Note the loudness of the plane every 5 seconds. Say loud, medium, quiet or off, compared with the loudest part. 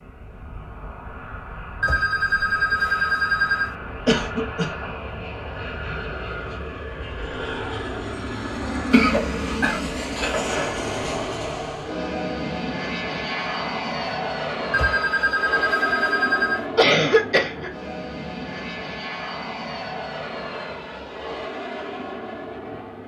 medium, loud, loud, loud, medium.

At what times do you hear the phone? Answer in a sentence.
You can hear the phone from 1.8 to 3.8 s and from 14.7 to 16.6 s.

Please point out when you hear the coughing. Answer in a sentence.
The coughing can be heard from 4.0 to 4.7 s, from 8.9 to 10.8 s and from 16.8 to 17.7 s.